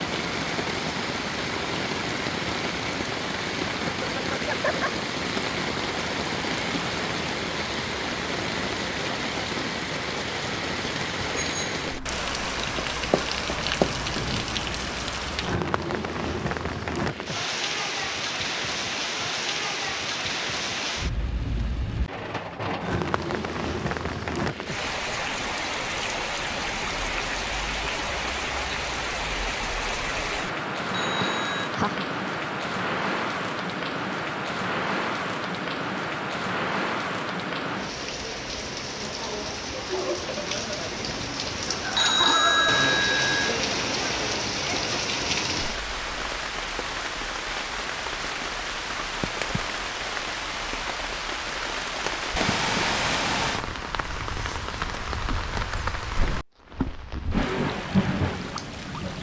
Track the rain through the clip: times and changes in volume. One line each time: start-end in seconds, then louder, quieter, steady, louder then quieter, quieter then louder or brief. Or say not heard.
0.0-59.1 steady.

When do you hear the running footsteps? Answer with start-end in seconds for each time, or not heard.
12.8-14.3.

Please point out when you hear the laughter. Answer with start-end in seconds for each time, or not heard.
4.0-5.0, 31.2-32.0, 41.6-43.0.